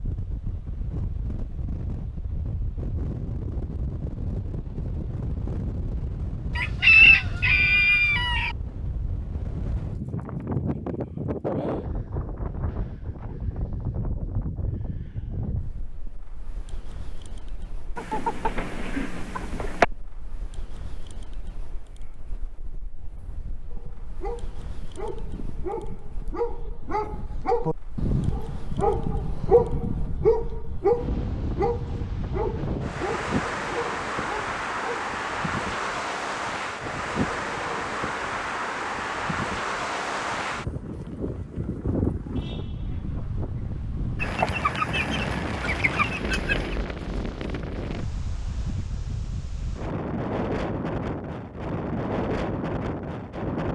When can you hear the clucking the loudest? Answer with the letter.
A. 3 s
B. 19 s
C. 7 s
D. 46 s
C.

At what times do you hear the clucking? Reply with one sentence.
You can hear the clucking from 6.5 to 8.6 s, from 17.9 to 19.9 s and from 44.2 to 46.8 s.